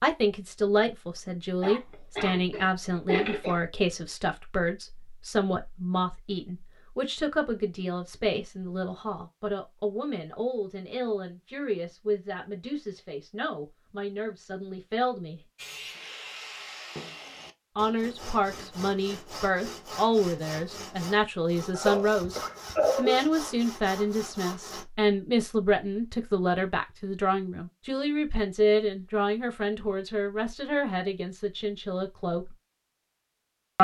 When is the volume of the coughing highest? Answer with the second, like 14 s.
23 s.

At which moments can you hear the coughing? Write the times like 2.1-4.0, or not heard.
1.6-3.6, 21.8-23.2.